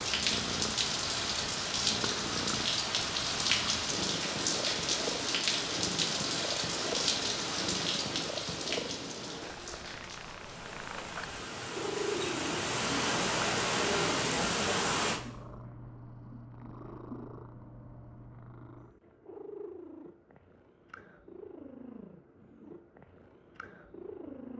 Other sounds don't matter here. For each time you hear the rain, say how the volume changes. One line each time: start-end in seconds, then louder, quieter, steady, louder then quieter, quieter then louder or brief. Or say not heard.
0.0-15.2 quieter then louder.